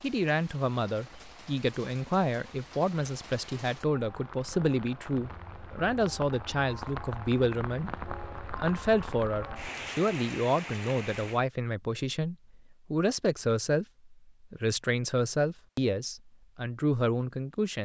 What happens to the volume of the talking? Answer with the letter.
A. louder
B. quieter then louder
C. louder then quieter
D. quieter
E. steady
E.